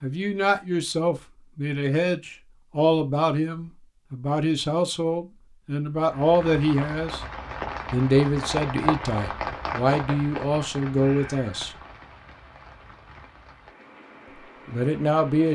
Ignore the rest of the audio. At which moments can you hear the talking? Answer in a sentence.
You can hear the talking from 0.0 to 7.2 s, from 7.9 to 11.7 s and from 14.7 to 15.4 s.